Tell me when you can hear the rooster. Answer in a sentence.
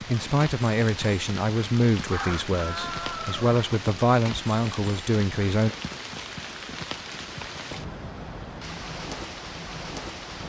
The rooster can be heard from 2.1 to 3.6 s.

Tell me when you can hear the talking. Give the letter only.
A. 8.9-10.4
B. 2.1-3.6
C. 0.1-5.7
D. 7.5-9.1
C.